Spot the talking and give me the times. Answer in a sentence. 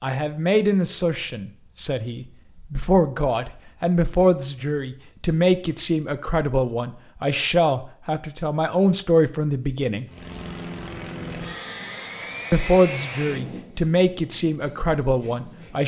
The talking can be heard from 0.0 to 10.1 s and from 12.5 to 15.8 s.